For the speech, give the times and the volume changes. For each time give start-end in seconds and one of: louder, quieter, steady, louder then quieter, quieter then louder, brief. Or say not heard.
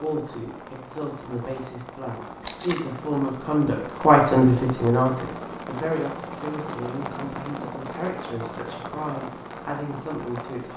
0.0-10.7 louder then quieter.